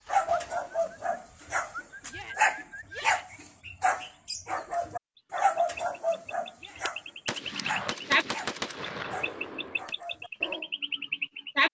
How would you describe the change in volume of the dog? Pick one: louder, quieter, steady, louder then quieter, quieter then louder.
louder then quieter.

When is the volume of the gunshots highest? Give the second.
8 s.